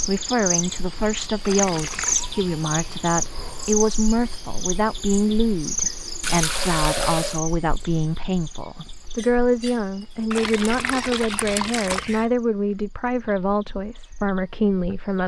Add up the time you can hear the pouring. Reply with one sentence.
The pouring can be heard for 4 seconds in total.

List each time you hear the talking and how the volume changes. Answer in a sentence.
You can hear the talking from 0.1 to 15.2 s, at a steady volume.